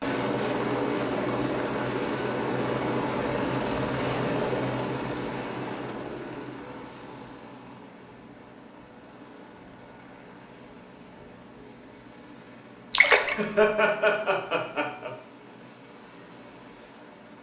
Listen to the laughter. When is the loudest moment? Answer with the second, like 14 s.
14 s.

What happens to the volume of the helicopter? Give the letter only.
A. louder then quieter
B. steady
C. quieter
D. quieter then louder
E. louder
C.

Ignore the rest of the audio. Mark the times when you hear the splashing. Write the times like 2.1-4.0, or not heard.
12.9-13.4.